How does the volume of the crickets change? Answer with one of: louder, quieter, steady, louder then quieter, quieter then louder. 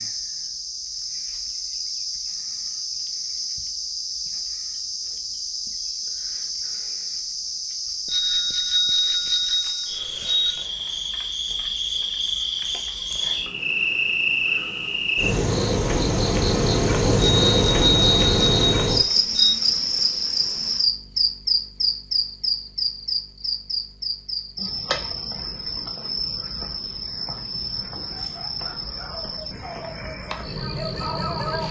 louder then quieter.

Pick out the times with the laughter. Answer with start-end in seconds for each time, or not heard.
not heard.